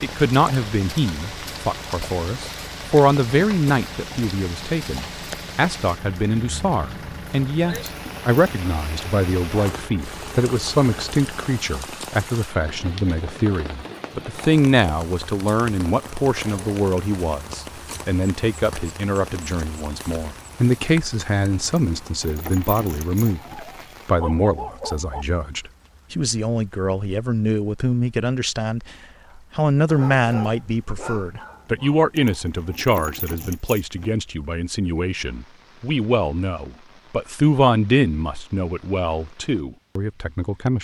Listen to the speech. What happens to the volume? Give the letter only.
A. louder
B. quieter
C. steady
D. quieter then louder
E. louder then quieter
C.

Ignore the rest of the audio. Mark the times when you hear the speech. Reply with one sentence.
The speech can be heard from 0.0 to 40.7 s.